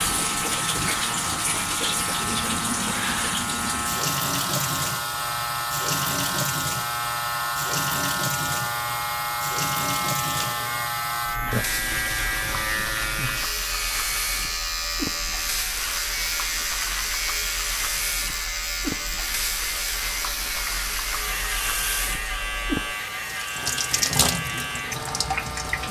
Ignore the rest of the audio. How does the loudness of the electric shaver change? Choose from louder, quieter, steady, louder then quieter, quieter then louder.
steady.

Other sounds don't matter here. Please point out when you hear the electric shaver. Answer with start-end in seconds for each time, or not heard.
0.0-25.8.